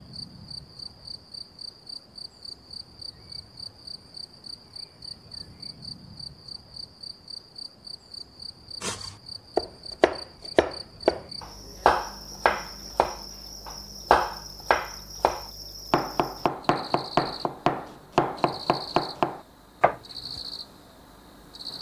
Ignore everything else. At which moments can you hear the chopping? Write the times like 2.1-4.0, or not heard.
8.8-20.4.